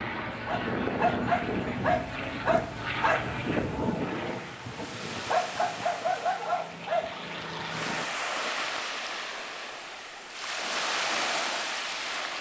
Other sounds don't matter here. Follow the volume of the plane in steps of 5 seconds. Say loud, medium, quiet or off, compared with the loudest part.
loud, medium, off.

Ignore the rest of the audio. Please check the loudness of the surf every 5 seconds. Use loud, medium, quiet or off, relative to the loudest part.
quiet, medium, loud.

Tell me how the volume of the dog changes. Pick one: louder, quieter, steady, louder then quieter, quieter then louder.
quieter then louder.